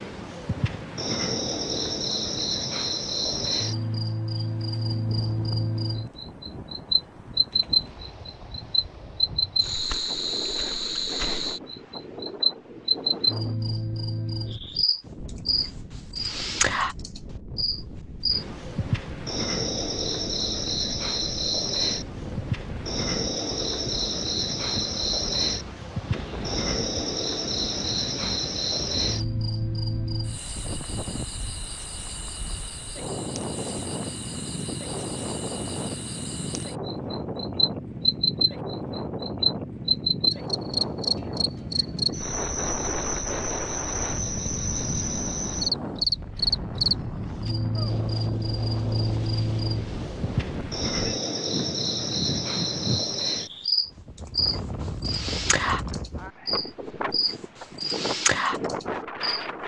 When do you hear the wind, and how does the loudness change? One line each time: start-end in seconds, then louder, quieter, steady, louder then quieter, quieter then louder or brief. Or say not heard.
0.0-59.6 louder.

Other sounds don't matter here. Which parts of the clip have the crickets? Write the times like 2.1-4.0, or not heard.
0.0-59.5.